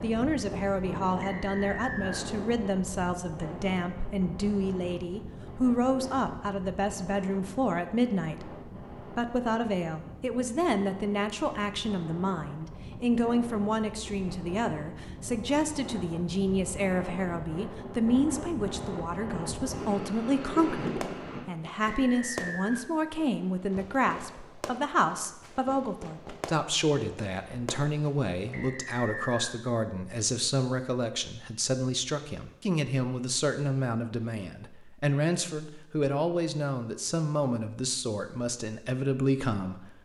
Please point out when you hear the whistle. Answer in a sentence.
You can hear the whistle from 1.2 to 2.2 s, from 21.9 to 22.9 s and from 28.5 to 29.6 s.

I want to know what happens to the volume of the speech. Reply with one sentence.
The volume of the speech stays about the same.